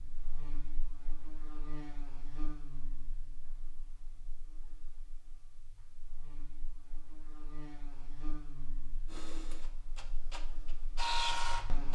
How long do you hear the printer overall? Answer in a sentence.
The printer can be heard for 3 seconds in total.